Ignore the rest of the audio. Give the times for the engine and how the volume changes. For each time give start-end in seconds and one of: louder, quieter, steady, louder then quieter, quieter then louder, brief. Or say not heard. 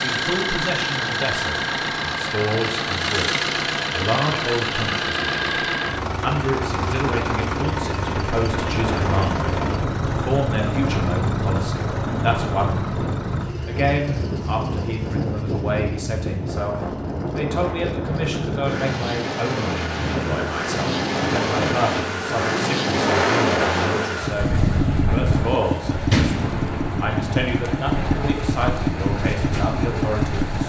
0.0-30.6 quieter then louder.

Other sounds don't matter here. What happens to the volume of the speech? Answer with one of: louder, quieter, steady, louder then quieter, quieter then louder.
steady.